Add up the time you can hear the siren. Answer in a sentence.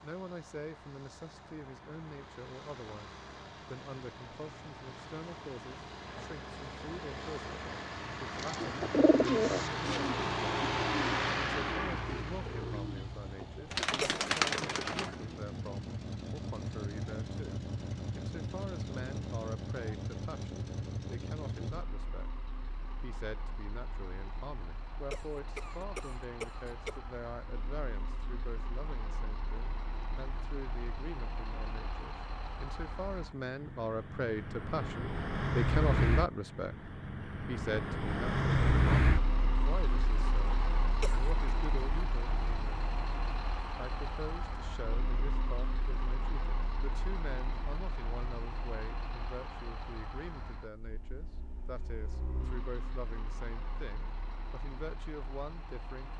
The siren can't be heard in this clip.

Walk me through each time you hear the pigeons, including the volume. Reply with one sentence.
You can hear the pigeons from 8.3 to 15.3 s, getting quieter then louder.